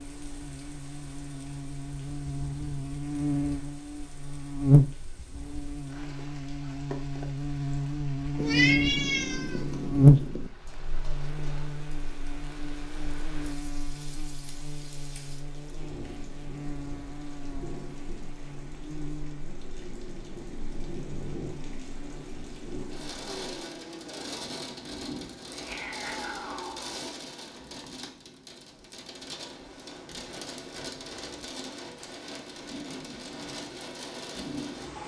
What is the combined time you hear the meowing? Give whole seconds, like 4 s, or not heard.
4 s.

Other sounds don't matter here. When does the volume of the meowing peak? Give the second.
9 s.